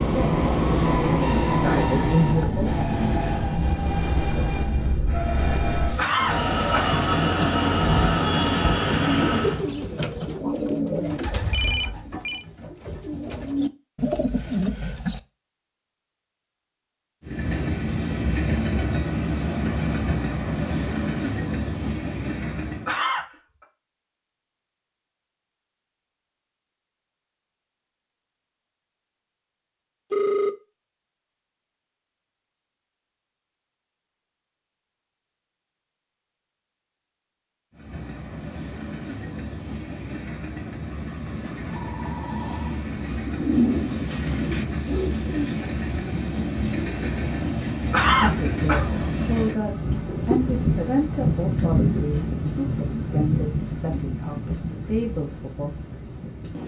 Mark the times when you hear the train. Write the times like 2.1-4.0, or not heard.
0.0-9.7, 17.2-22.9, 37.7-56.6.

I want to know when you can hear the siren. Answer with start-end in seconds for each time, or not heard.
not heard.